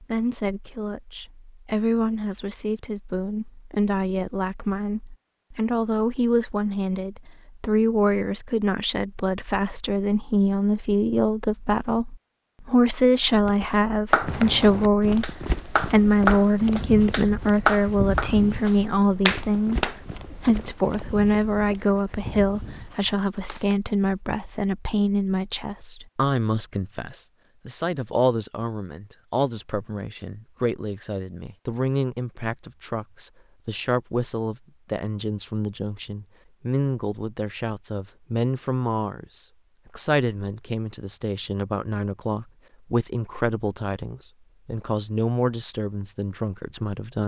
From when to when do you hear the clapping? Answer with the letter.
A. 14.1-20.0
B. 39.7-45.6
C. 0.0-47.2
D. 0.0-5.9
A.